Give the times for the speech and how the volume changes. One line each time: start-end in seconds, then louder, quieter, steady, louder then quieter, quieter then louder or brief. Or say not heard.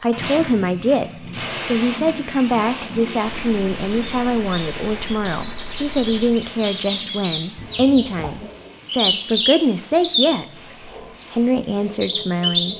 0.0-12.7 steady.